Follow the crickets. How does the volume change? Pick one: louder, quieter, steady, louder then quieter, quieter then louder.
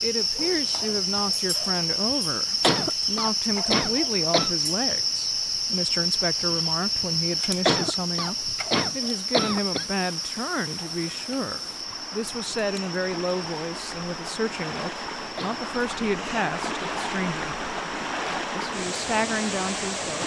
quieter.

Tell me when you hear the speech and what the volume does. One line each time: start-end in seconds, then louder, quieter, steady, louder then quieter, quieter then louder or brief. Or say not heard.
0.0-17.6 steady
18.6-20.2 brief.